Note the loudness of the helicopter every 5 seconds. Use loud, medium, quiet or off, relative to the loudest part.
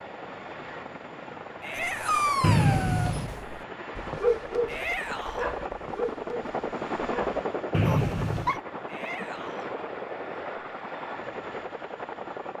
medium, loud, loud.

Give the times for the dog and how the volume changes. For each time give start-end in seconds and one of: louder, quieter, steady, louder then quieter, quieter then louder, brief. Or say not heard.
1.8-8.6 quieter.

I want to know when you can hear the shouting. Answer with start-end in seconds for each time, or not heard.
1.6-2.4, 4.7-5.5, 8.8-9.7.